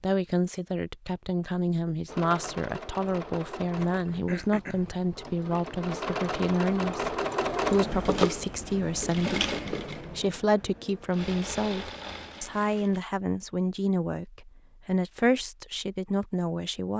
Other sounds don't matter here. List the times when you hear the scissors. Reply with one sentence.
You can't hear the scissors here.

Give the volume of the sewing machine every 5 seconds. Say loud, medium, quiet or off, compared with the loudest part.
medium, loud, medium, off.